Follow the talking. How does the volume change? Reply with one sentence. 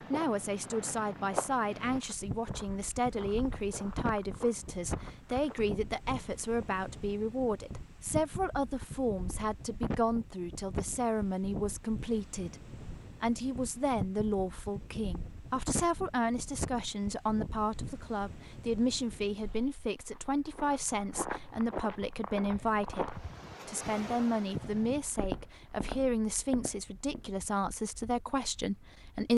The volume of the talking stays about the same.